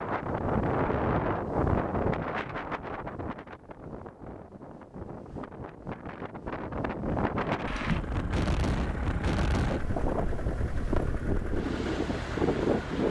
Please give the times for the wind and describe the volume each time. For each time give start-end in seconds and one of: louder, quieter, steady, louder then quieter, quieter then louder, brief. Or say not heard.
0.0-13.0 quieter then louder.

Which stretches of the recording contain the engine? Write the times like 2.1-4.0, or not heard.
7.5-13.0.